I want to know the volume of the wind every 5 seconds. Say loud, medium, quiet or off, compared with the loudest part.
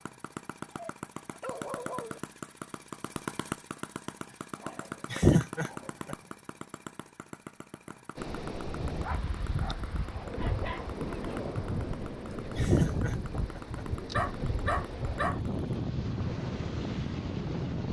off, medium, loud, loud.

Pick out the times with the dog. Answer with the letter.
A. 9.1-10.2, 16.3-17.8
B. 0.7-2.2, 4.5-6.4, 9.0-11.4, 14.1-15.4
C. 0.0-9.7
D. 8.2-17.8
B.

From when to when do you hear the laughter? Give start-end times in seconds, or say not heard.
5.1-6.2, 12.3-13.8.